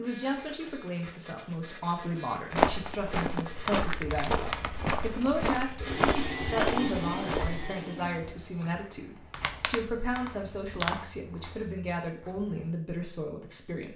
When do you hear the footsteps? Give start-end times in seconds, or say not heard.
2.5-12.8.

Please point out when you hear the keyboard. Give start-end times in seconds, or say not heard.
3.5-5.3, 9.3-10.9.